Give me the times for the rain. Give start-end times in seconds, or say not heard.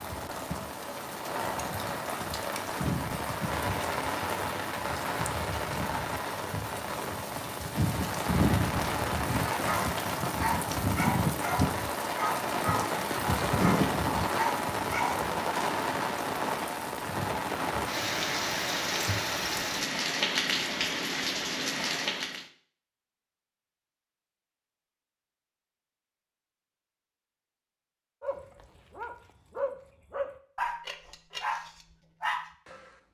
0.0-22.4.